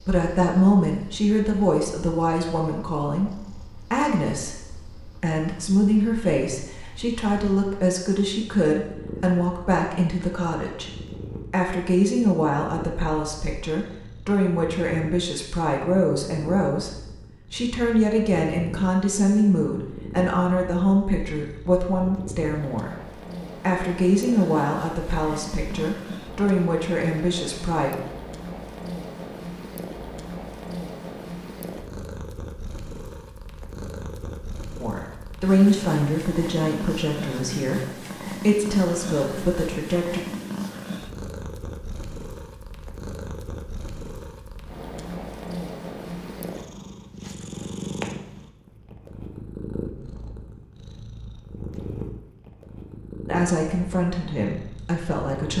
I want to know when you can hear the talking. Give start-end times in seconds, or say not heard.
0.0-10.9, 11.5-27.9, 34.8-40.2, 53.2-55.5.